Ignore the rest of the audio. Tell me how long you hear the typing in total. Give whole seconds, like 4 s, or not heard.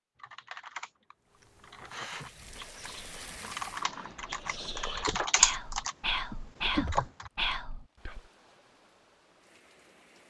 7 s.